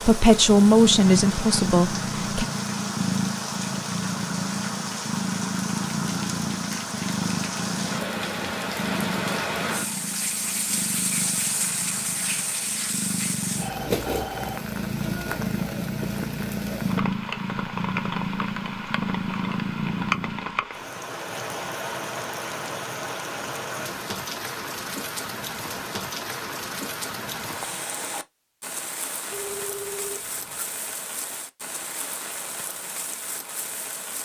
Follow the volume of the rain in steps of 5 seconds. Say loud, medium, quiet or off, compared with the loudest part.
loud, loud, loud, loud, loud, loud, medium.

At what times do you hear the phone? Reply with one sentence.
You can hear the phone from 13.6 to 14.6 s and from 29.3 to 30.6 s.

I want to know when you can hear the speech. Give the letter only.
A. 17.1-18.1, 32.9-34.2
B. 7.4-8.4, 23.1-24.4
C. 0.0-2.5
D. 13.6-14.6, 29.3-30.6
C.